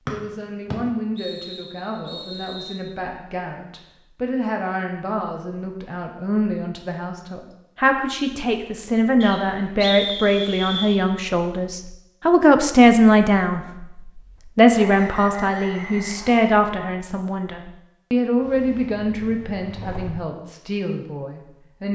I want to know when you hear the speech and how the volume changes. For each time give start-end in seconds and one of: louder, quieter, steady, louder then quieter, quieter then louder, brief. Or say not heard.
0.1-21.9 louder then quieter.